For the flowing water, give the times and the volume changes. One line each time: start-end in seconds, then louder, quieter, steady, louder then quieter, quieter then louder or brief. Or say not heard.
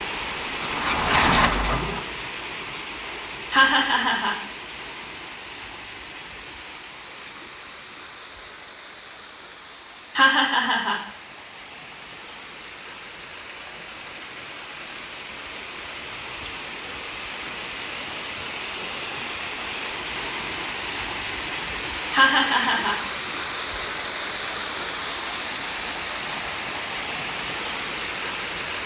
0.0-28.8 quieter then louder.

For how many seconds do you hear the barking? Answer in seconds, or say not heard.
2 s.